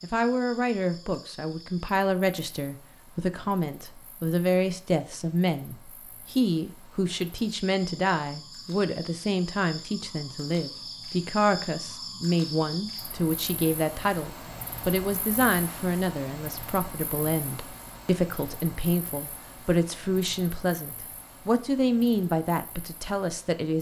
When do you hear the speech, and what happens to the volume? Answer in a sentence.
You can hear the speech from 0.0 to 23.7 s, at a steady volume.